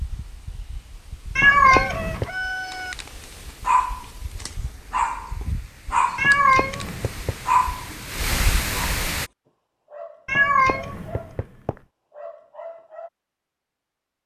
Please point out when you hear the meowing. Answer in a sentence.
You can hear the meowing from 1.4 to 2.2 s, from 6.2 to 7.3 s and from 10.2 to 11.8 s.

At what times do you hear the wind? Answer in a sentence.
The wind can be heard from 0.0 to 9.3 s.